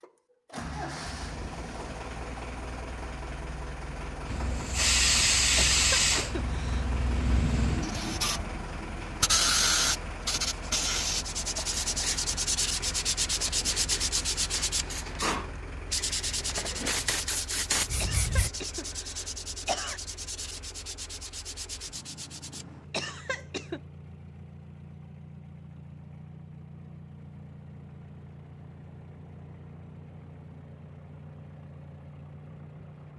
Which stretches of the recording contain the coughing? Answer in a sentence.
You can hear the coughing from 5.5 to 7.0 s, from 18.0 to 20.0 s and from 22.9 to 23.8 s.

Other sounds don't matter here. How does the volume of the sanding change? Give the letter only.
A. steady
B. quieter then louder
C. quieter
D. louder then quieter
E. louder
C.